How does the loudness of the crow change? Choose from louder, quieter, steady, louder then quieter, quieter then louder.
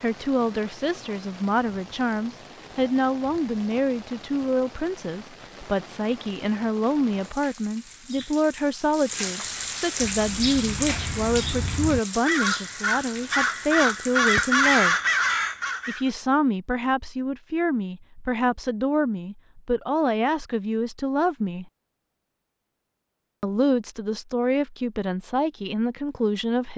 louder.